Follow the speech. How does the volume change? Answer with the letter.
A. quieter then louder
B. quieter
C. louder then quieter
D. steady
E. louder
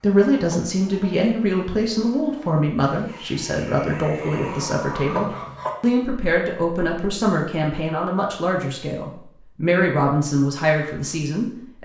D.